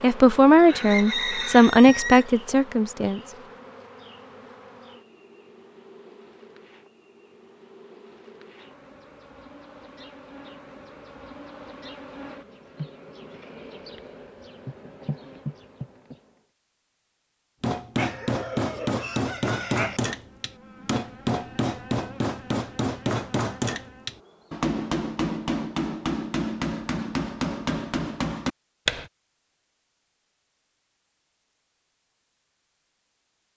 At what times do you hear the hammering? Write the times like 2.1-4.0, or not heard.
17.6-29.1.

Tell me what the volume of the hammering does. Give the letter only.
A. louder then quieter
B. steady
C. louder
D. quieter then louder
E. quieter
B.